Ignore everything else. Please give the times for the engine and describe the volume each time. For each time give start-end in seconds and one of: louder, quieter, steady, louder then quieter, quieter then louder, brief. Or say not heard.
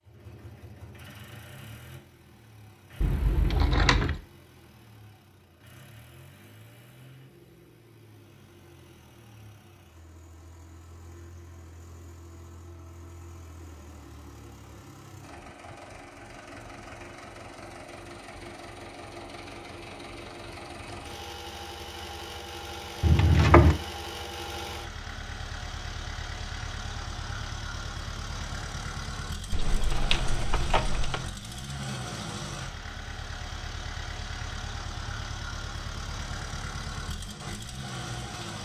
0.0-38.5 louder.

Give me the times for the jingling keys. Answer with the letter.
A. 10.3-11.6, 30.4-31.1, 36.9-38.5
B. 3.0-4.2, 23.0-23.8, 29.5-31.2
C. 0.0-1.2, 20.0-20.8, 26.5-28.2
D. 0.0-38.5
B.